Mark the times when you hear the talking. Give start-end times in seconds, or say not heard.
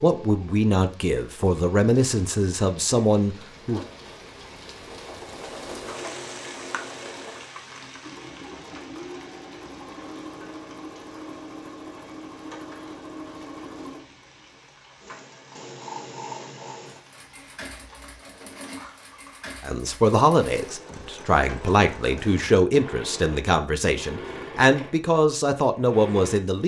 0.0-3.8, 19.6-26.6.